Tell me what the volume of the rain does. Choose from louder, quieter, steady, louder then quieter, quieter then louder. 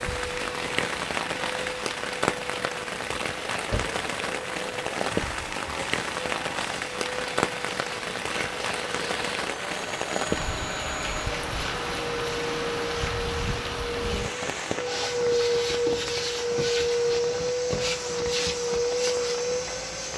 quieter.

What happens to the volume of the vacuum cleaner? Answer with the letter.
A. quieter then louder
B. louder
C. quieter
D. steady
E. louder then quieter
B.